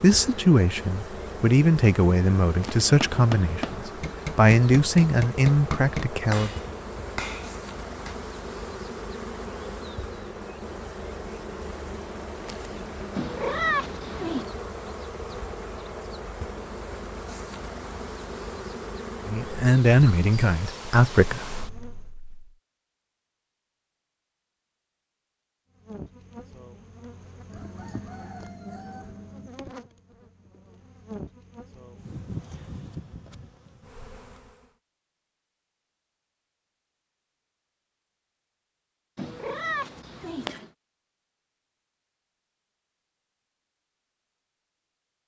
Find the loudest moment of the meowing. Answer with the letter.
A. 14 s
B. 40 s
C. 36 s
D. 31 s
A.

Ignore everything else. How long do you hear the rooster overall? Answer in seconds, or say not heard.
2 s.